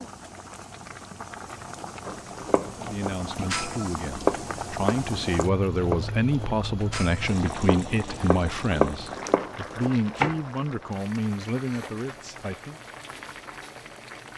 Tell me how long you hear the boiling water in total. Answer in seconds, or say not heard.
14 s.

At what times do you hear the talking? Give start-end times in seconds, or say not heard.
2.8-12.8.